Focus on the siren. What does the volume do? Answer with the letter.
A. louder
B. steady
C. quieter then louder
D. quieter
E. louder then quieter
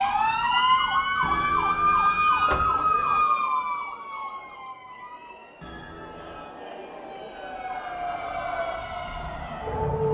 C.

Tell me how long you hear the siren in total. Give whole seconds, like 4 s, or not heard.
10 s.